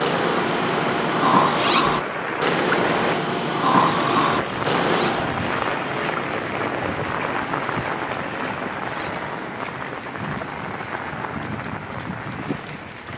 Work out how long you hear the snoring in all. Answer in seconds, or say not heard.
5 s.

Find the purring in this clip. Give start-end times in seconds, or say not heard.
not heard.